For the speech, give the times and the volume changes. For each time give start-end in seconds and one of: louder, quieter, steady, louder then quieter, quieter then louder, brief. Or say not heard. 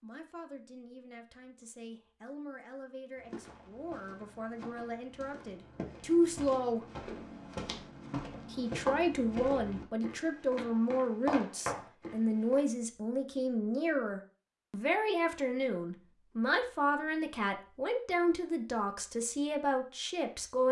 0.0-6.8 louder
8.5-20.6 steady.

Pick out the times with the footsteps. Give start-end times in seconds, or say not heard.
3.1-12.6.